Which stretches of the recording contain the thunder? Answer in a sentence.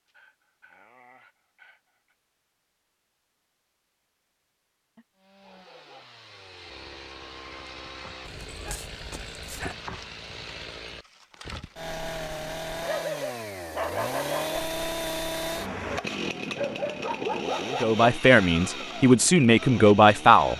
You can't hear the thunder here.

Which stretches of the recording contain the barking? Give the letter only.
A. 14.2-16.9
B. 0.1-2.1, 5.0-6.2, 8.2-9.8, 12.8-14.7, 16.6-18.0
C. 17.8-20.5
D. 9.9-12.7
B.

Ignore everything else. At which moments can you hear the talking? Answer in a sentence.
The talking can be heard from 17.8 to 20.5 s.